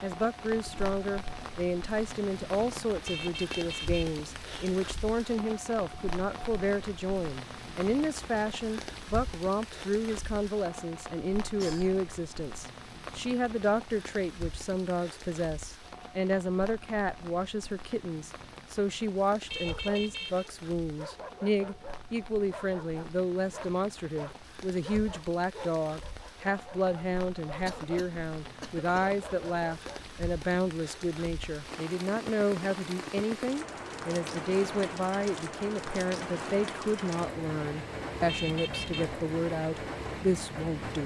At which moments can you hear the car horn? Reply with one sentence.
The car horn can be heard from 3.0 to 4.7 s, from 19.5 to 20.5 s and from 38.2 to 39.0 s.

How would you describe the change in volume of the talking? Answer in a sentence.
The volume of the talking stays about the same.